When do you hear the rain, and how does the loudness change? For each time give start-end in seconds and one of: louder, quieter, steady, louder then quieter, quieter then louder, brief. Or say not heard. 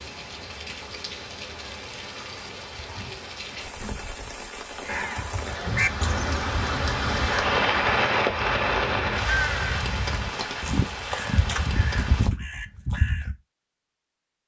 0.0-12.3 louder then quieter.